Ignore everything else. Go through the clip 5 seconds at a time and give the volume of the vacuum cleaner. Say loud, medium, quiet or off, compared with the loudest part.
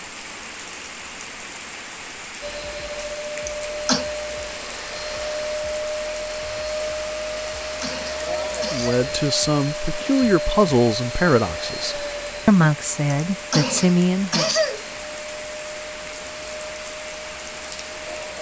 loud, loud, loud, medium.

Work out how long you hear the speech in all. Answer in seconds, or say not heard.
6 s.